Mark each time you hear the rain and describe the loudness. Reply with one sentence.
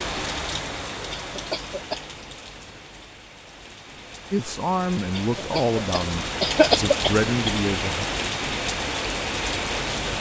The rain can be heard from 0.0 to 10.1 s, getting quieter then louder.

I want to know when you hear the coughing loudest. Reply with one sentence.
The volume of the coughing peaks at 7 seconds.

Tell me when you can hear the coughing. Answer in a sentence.
The coughing can be heard from 1.1 to 2.0 s and from 5.1 to 7.5 s.